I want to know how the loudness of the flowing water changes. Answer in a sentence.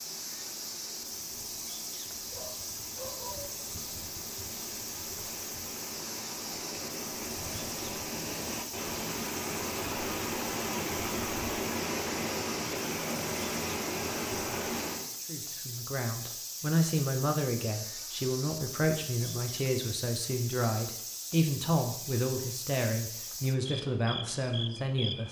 The volume of the flowing water goes up.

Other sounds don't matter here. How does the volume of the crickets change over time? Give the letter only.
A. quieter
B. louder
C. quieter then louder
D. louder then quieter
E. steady
E.